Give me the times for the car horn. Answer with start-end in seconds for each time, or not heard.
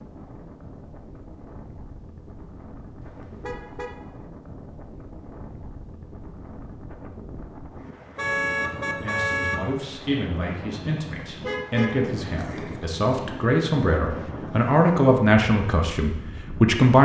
3.0-4.0, 8.2-9.6, 11.4-12.8.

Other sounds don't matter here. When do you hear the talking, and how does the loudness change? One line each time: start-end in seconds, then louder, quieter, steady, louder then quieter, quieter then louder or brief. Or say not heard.
8.9-17.0 louder.